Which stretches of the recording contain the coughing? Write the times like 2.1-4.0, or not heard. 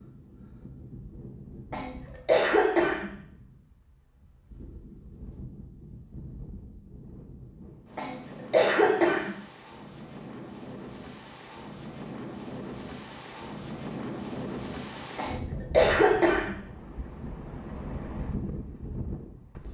1.7-3.1, 8.0-9.3, 15.2-16.6.